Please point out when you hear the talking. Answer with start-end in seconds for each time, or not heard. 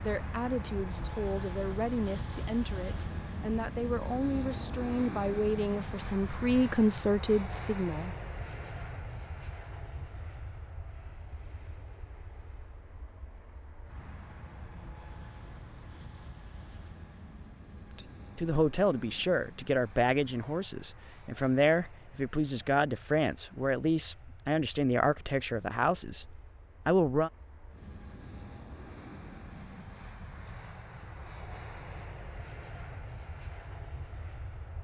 0.0-8.2, 17.9-27.3.